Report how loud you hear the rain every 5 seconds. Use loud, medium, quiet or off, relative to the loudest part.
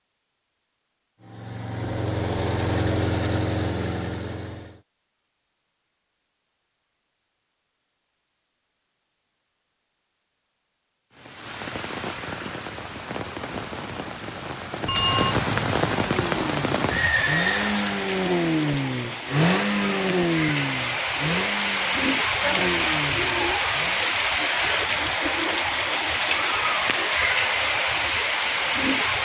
off, off, medium, loud, loud, loud.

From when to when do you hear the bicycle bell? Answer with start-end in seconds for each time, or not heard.
14.8-15.3.